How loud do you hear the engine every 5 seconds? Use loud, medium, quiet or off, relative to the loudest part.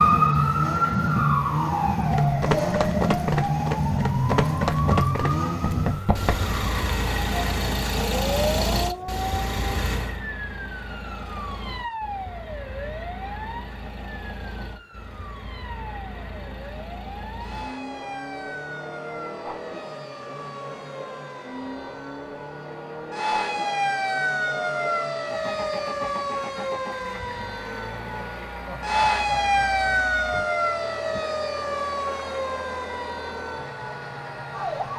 loud, loud, quiet, quiet, quiet, quiet, quiet.